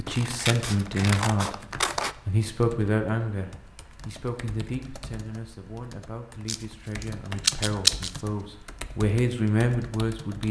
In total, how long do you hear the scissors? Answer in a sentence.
The scissors can be heard for 4 seconds in total.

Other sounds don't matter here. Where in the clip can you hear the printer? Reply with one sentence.
The printer can't be heard in this clip.